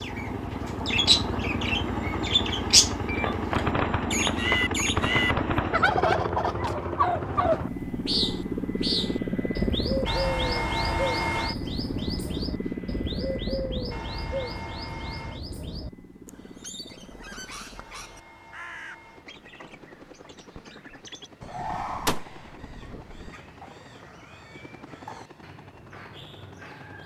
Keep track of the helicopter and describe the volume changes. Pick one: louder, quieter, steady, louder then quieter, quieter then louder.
quieter.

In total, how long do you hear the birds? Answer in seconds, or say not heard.
27 s.